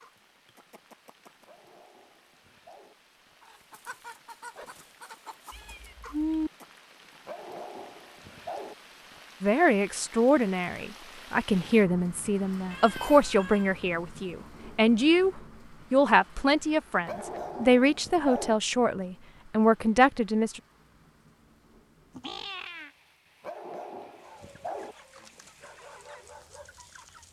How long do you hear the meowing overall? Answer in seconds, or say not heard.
3 s.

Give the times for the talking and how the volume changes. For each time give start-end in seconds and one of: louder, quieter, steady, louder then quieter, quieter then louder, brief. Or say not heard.
9.4-20.6 steady.